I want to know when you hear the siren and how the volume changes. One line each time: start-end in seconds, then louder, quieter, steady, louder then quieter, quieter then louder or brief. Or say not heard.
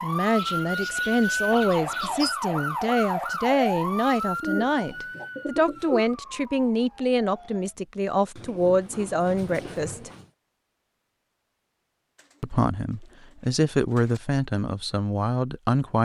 0.0-7.8 quieter.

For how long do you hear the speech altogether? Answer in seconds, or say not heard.
14 s.